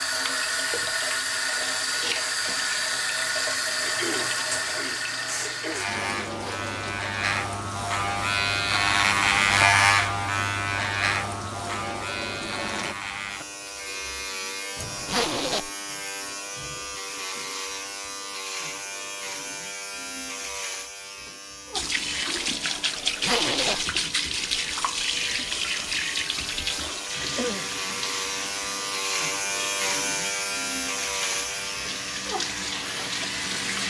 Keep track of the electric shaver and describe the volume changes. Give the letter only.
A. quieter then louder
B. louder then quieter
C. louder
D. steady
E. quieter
A.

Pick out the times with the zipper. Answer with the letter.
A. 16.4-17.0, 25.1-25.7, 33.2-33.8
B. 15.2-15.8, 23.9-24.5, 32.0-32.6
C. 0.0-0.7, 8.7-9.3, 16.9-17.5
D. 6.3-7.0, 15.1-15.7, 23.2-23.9
D.